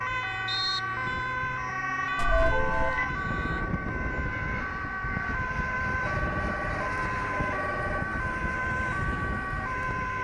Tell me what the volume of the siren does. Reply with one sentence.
The volume of the siren stays about the same.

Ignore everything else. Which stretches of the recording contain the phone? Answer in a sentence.
You can hear the phone from 2.1 to 3.1 s and from 6.0 to 8.1 s.